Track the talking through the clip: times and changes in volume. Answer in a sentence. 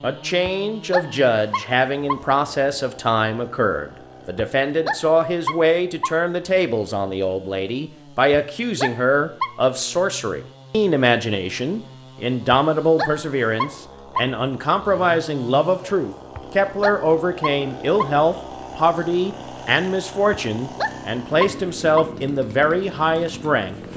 The talking can be heard from 0.0 to 23.9 s, at a steady volume.